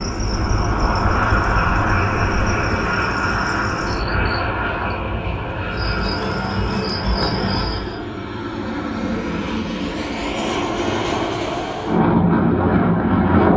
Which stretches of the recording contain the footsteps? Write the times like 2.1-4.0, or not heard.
not heard.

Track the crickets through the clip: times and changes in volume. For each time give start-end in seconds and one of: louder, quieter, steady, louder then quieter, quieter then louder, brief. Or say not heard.
0.0-8.0 louder.